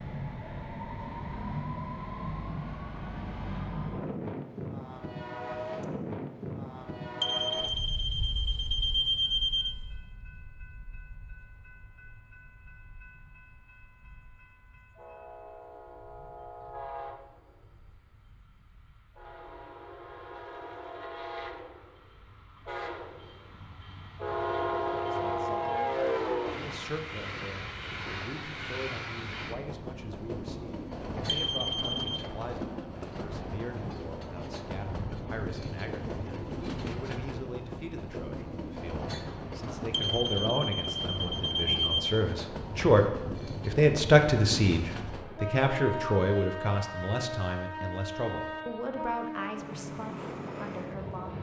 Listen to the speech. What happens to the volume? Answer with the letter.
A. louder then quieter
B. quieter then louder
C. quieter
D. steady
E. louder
A.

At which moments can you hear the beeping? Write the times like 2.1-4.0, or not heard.
7.2-9.8, 31.2-32.2, 39.9-42.1.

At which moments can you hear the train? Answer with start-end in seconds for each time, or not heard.
0.0-51.3.